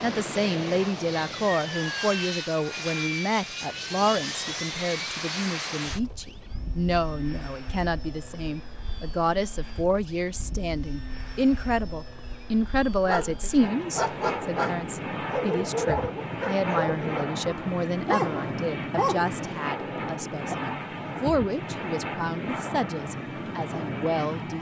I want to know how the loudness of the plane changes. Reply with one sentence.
The loudness of the plane goes down, then up.